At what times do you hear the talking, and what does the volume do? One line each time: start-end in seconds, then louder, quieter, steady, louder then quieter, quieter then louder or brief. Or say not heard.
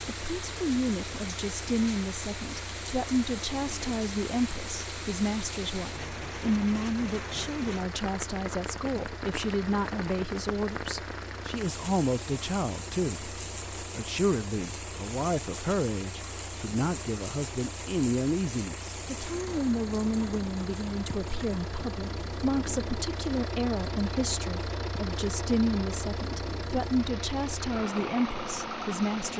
0.1-29.3 steady.